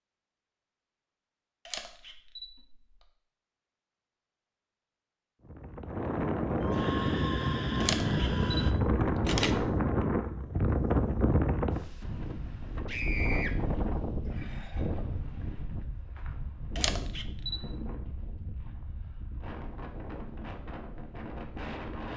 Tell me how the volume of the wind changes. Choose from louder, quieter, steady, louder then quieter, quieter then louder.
quieter.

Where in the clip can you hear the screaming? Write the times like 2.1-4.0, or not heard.
6.6-8.8, 12.8-13.5.